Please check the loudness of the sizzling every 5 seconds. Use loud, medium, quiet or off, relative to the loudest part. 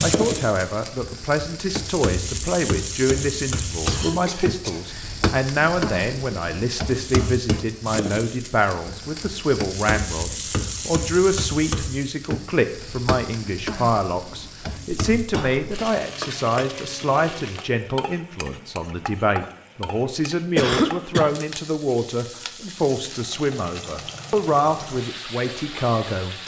loud, loud, loud, medium, medium, medium.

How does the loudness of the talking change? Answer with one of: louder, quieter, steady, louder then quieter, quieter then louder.
steady.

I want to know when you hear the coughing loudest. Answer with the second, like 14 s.
21 s.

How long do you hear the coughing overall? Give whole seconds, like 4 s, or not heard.
3 s.